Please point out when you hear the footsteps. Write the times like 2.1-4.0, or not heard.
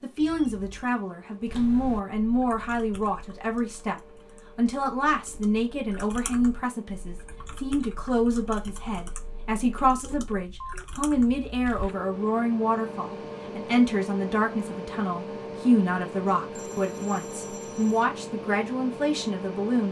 not heard.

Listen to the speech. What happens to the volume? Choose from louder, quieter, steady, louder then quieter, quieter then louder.
steady.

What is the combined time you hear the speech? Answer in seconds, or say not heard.
20 s.